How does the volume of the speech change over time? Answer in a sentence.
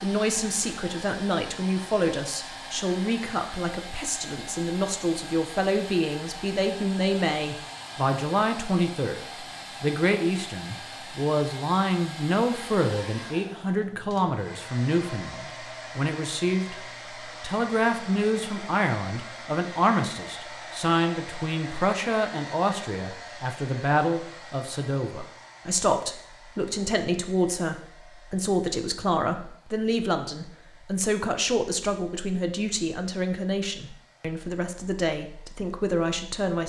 The loudness of the speech stays about the same.